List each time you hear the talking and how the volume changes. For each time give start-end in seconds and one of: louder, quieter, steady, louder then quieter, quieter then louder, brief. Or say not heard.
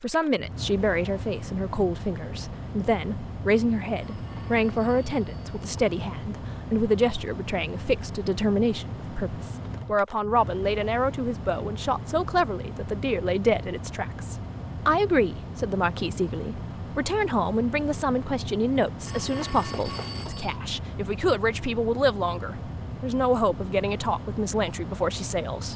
0.0-25.7 steady.